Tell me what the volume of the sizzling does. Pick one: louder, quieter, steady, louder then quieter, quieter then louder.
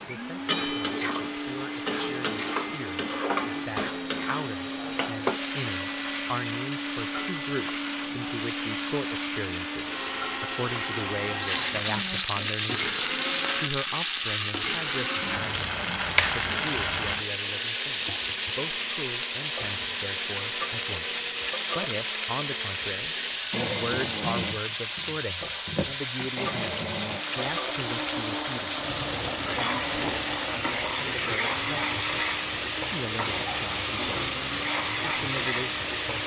steady.